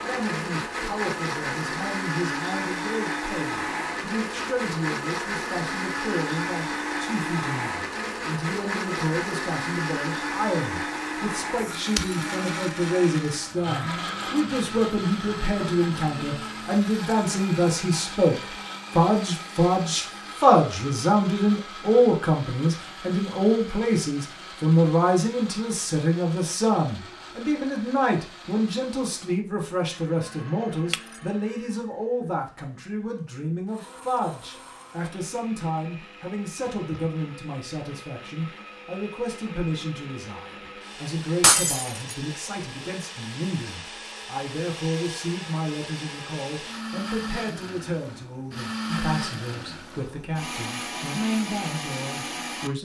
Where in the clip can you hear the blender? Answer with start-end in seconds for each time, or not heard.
0.0-52.7.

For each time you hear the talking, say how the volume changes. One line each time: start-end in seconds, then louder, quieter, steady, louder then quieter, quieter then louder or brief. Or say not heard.
0.0-52.8 louder then quieter.